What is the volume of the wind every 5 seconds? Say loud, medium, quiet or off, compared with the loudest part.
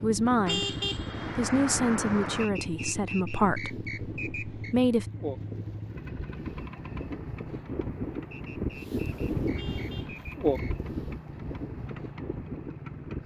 medium, loud, loud.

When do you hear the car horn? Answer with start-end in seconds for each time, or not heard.
0.5-2.5, 9.6-10.3.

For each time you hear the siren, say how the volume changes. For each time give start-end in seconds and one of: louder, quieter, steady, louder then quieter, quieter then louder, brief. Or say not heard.
not heard.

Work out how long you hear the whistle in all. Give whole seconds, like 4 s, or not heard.
5 s.